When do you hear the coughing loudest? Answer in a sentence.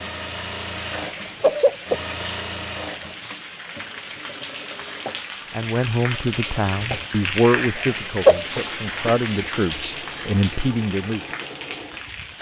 The volume of the coughing peaks at 8 seconds.